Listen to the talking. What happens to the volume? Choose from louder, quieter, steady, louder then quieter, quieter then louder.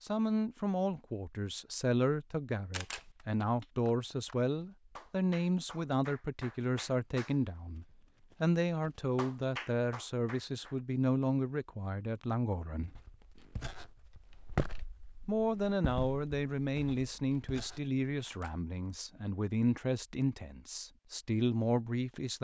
steady.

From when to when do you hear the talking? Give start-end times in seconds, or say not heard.
0.0-13.0, 15.2-22.4.